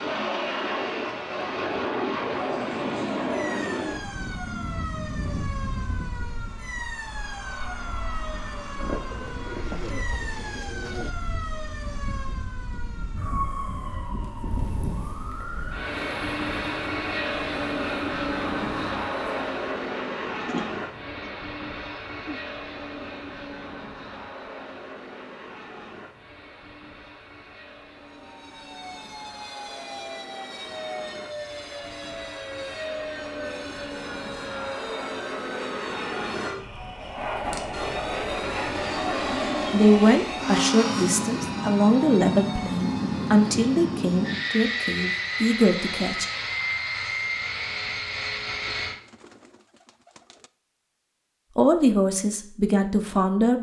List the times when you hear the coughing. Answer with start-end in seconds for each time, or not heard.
not heard.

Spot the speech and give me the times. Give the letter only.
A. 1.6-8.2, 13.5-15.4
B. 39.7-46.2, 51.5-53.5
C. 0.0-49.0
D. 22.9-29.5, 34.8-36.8
B.